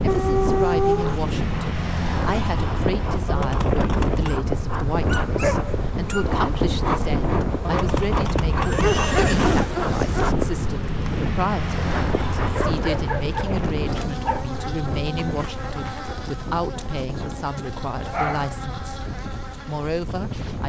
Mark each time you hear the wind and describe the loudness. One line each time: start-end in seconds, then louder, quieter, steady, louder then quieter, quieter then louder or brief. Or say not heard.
0.0-20.6 quieter.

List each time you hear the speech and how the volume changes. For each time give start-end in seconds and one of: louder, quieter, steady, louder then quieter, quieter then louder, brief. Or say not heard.
0.0-19.1 steady
19.6-20.6 brief.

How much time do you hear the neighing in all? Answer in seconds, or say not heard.
4 s.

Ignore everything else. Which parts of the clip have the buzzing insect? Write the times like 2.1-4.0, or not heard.
0.0-20.6.